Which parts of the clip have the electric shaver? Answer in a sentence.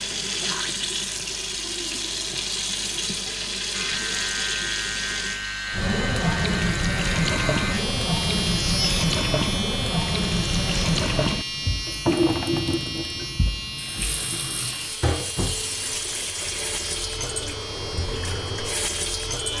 You can hear the electric shaver from 3.7 to 19.5 s.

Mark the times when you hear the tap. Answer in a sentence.
You can hear the tap from 0.0 to 19.5 s.